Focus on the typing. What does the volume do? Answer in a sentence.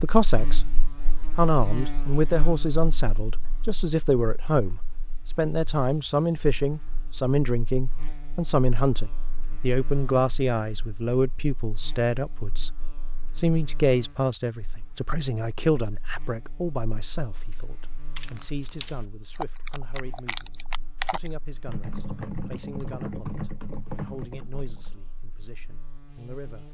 The volume of the typing goes up.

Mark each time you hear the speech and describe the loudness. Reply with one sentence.
The speech can be heard briefly from 0.0 to 0.7 s; and from 1.4 to 26.6 s, getting quieter.